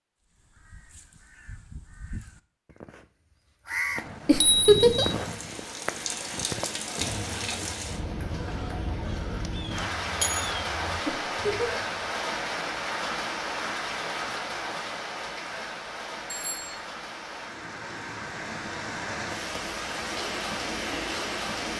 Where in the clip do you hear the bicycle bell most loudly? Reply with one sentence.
The volume of the bicycle bell peaks at 5 seconds.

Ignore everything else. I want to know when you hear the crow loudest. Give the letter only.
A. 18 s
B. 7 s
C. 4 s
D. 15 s
C.